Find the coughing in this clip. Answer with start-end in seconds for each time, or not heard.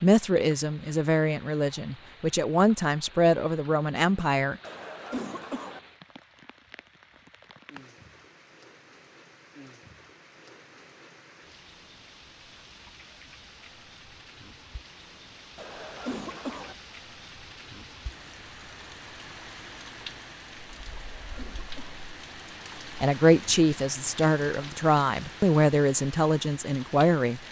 4.6-5.8, 15.6-16.8, 20.9-22.1.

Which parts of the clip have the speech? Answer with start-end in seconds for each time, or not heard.
0.0-4.6, 23.0-27.4.